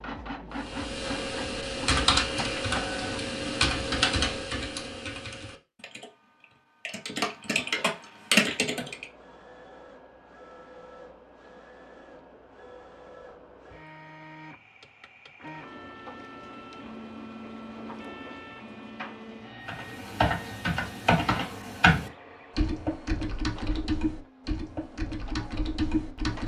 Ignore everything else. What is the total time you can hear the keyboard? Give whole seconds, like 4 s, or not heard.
15 s.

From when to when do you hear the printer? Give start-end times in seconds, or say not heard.
0.0-3.2, 8.8-26.4.